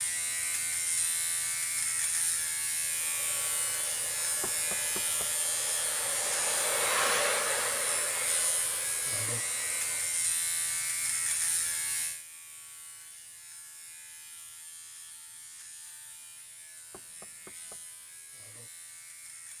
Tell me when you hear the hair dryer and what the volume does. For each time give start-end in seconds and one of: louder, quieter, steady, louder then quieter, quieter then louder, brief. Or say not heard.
2.8-10.3 louder then quieter.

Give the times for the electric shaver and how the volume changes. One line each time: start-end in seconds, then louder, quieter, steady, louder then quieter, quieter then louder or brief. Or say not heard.
0.0-19.5 quieter.